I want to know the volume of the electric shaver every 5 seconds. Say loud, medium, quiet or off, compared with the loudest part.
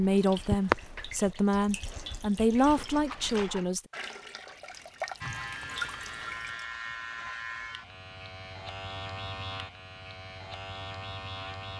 off, loud, loud.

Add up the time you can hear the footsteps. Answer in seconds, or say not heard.
not heard.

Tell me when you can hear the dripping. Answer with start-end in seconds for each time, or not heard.
0.0-6.7.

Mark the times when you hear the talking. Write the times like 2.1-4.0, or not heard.
0.0-3.8.